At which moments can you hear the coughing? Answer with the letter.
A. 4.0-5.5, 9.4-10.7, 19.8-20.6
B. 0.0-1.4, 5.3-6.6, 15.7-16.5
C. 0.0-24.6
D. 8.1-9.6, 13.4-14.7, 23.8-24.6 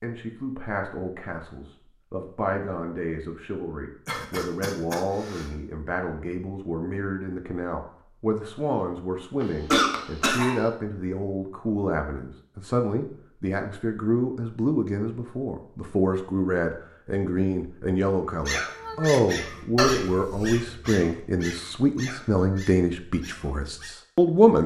A.